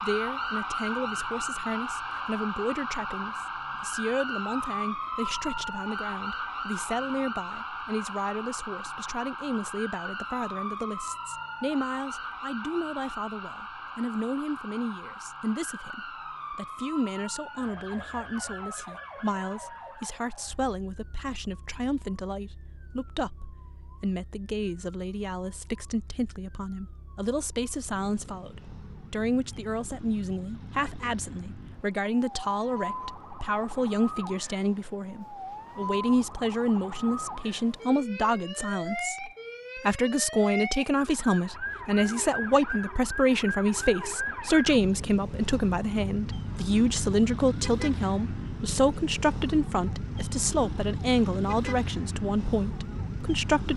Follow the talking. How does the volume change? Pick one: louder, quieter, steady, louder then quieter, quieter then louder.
louder.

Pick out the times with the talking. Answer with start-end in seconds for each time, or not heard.
0.0-53.7.